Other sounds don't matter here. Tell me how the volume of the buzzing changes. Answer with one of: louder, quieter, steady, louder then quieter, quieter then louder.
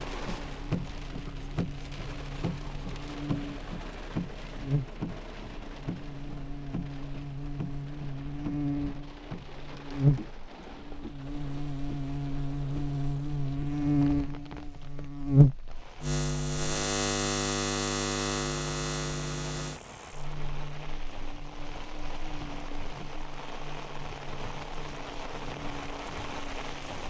louder then quieter.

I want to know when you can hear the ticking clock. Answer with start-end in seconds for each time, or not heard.
not heard.